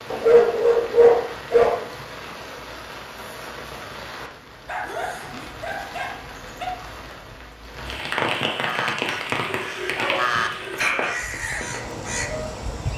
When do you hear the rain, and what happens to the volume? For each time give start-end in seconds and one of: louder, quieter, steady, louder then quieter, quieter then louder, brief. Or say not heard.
0.0-12.9 louder then quieter.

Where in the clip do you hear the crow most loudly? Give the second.
10 s.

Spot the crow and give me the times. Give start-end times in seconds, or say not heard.
8.6-12.9.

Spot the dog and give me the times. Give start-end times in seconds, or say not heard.
0.1-1.8, 4.7-6.7, 9.4-11.1.